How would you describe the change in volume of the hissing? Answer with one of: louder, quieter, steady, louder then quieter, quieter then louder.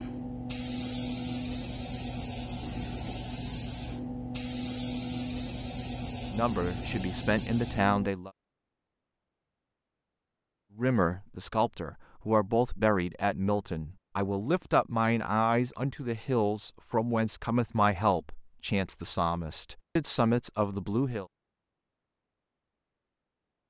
steady.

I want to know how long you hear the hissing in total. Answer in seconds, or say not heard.
8 s.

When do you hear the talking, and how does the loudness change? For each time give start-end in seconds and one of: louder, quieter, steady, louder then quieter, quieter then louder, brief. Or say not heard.
6.3-8.3 brief
10.8-21.2 steady.